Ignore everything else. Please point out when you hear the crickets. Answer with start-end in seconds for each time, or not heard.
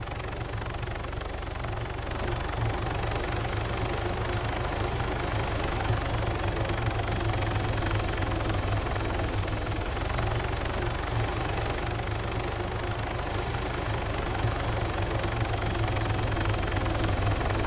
3.0-17.6.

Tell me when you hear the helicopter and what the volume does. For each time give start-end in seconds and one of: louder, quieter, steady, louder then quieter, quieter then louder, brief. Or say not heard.
0.0-17.6 steady.